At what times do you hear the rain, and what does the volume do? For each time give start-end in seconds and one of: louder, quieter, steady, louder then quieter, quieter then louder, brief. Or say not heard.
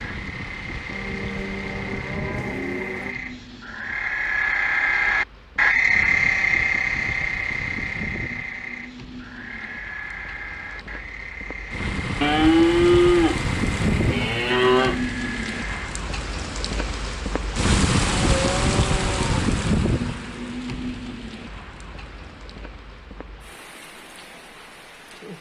0.0-25.3 louder then quieter.